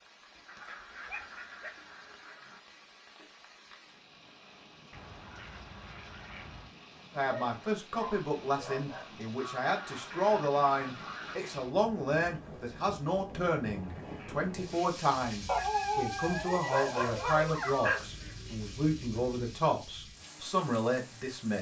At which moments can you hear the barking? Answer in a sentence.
You can hear the barking from 1.1 to 2.2 s, from 7.2 to 9.2 s and from 15.4 to 18.0 s.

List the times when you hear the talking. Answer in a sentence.
The talking can be heard from 7.1 to 21.5 s.